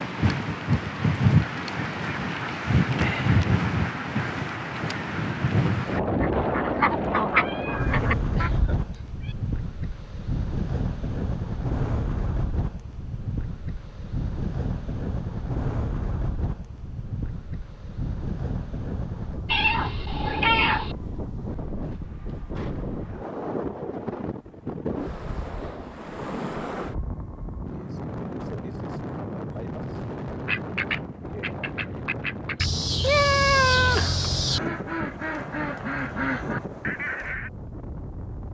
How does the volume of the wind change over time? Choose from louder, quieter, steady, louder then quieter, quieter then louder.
quieter.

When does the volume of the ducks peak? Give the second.
7 s.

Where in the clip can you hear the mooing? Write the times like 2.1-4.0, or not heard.
not heard.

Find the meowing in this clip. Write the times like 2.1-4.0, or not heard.
7.3-9.3, 19.4-20.9, 32.5-34.6.